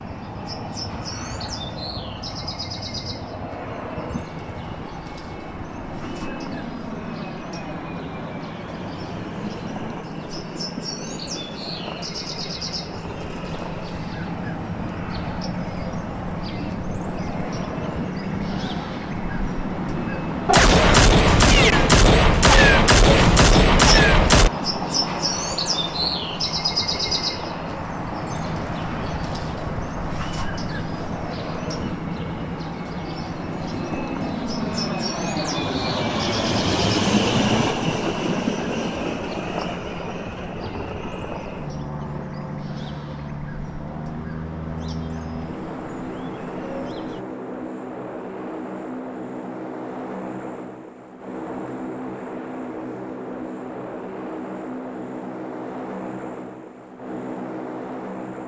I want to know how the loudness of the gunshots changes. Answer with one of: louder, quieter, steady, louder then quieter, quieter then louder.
steady.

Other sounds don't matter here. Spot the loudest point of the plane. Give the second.
37 s.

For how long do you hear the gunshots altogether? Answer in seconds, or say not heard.
4 s.